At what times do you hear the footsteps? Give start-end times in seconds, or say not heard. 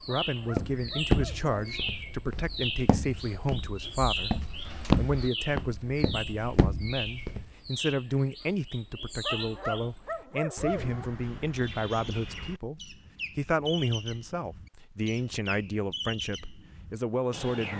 0.5-7.5.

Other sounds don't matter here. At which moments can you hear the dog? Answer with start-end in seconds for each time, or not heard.
0.2-1.9, 9.2-11.1.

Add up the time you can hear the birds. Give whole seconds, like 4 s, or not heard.
18 s.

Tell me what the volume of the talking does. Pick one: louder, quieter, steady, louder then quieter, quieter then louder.
steady.